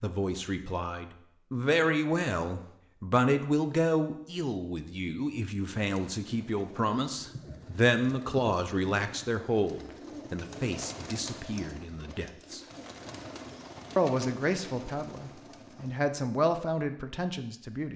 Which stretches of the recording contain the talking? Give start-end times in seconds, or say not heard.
0.0-12.6, 13.9-17.9.